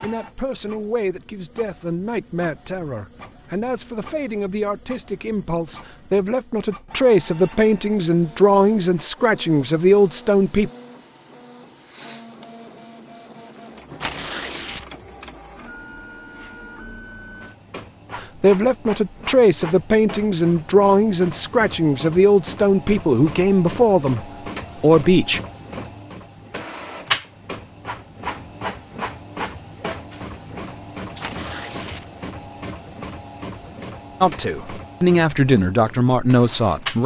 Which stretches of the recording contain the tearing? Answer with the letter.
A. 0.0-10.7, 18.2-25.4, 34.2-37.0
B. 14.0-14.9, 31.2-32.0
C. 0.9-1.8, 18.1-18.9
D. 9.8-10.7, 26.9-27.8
B.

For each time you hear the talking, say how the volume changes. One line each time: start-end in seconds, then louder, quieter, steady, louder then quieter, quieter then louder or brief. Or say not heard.
0.0-10.7 louder
18.2-25.4 steady
34.2-37.0 brief.